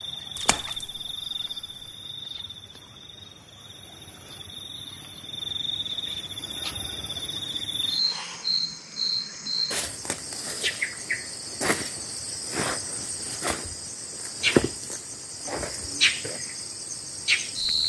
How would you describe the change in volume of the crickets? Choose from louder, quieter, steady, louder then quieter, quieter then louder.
louder.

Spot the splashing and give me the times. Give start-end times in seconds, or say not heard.
0.3-1.0.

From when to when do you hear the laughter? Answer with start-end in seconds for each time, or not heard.
not heard.